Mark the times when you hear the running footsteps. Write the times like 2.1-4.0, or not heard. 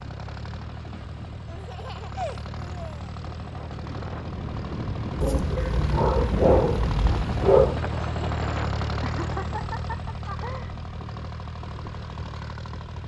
not heard.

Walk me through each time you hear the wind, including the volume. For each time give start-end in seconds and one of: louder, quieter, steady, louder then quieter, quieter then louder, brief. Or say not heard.
0.0-13.0 louder then quieter.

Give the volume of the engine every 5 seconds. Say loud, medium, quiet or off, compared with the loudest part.
medium, loud, medium.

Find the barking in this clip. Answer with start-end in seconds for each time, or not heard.
5.2-7.8.